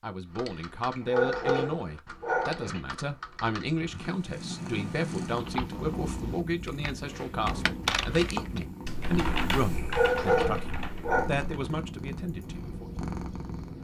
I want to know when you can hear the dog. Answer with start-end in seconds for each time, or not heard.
0.9-2.8, 9.8-11.3.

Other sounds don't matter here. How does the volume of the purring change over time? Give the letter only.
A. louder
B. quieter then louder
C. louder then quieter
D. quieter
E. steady
E.